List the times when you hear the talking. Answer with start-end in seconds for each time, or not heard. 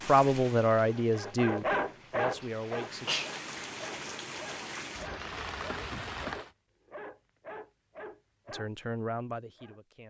0.1-3.1, 8.5-10.0.